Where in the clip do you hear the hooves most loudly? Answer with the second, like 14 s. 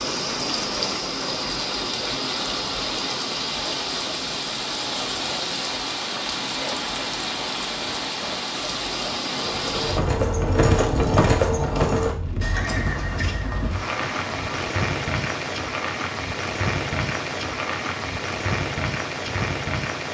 11 s.